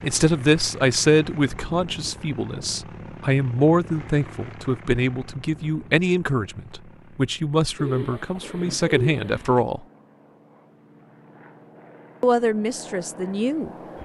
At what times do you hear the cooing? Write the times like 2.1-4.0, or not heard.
7.8-9.7.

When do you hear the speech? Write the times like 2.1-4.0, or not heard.
0.0-9.8, 12.2-13.8.